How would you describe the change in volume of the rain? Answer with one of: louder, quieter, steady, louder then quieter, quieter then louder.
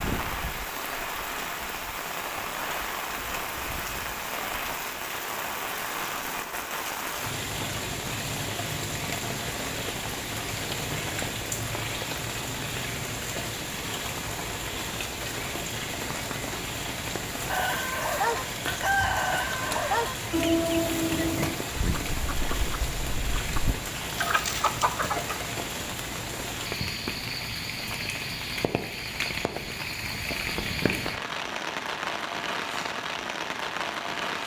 steady.